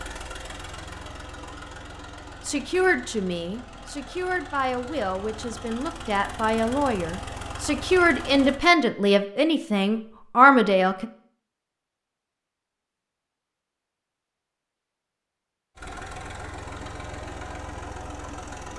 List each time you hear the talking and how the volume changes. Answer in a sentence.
The talking can be heard from 2.5 to 11.1 s, getting louder.